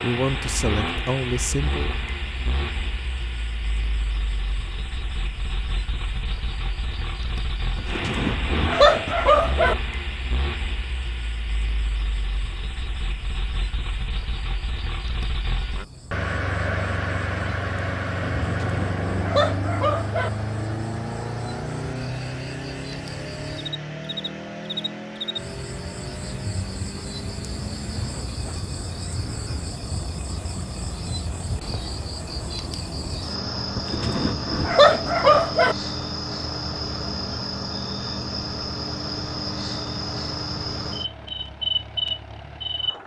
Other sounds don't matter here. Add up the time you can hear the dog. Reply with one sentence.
The dog can be heard for 6 seconds in total.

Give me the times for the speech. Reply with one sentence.
The speech can be heard from 0.0 to 1.9 s.